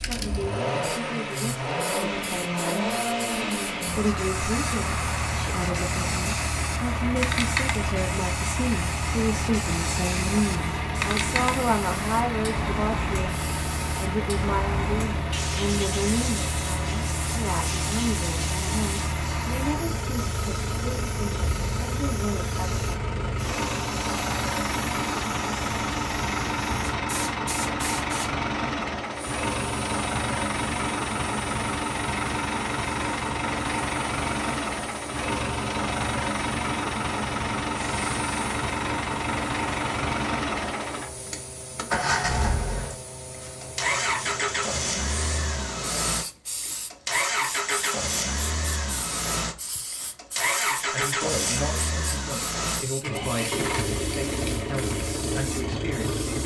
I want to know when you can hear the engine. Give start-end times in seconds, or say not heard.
0.0-56.4.